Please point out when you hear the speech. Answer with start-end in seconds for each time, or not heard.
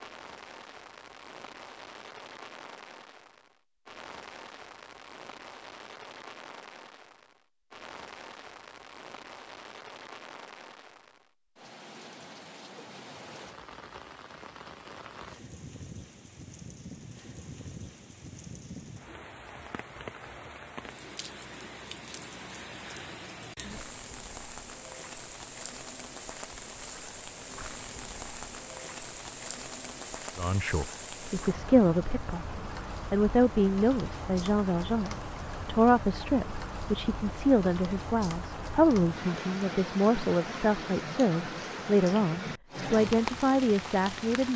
30.4-44.5.